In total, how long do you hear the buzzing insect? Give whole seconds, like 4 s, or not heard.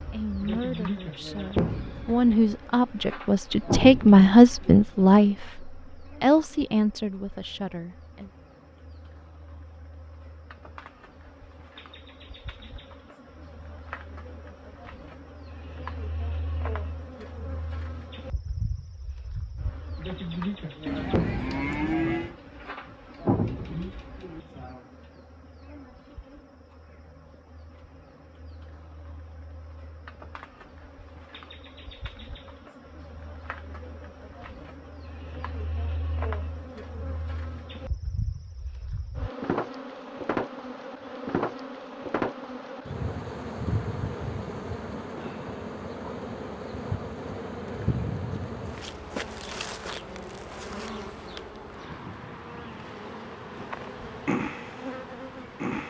56 s.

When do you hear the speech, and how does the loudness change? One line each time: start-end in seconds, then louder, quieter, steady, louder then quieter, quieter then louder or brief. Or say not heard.
0.1-8.3 louder then quieter.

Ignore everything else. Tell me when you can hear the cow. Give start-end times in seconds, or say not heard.
20.9-22.4.